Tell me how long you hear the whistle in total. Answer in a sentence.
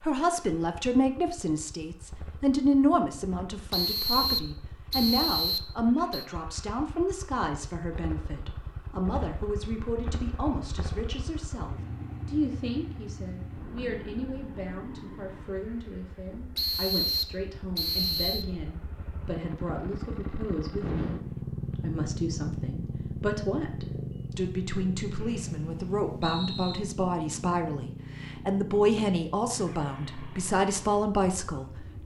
The whistle can be heard for 6 seconds in total.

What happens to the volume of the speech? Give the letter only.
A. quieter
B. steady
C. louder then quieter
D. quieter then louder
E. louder
D.